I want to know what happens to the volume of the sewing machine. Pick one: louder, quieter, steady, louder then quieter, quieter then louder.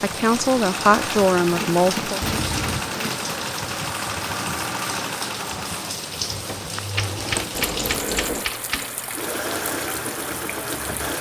steady.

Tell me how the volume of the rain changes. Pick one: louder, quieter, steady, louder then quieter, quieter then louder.
steady.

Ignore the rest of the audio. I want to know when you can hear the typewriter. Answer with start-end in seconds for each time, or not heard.
1.4-3.4, 6.9-8.9.